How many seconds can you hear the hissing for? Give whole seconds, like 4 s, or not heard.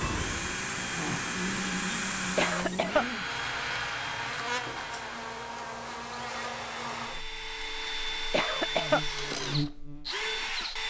3 s.